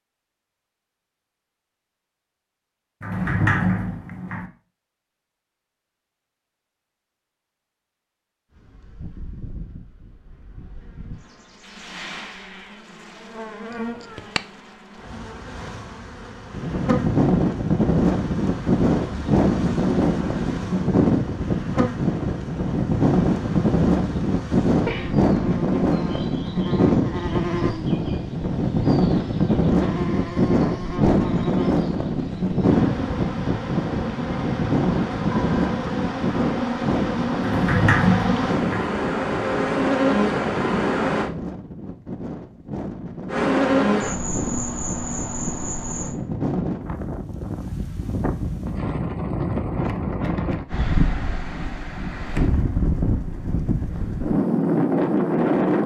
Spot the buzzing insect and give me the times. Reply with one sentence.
The buzzing insect can be heard from 8.5 to 41.3 s and from 43.2 to 46.1 s.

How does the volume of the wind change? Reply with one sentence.
The volume of the wind goes down, then up.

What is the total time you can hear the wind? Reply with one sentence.
The wind can be heard for 39 seconds in total.